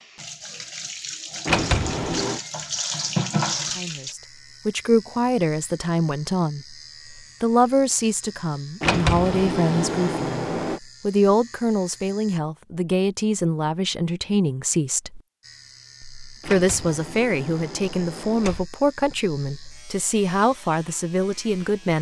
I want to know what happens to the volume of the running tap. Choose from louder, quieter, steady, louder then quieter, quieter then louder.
louder.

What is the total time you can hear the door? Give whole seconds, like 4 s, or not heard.
5 s.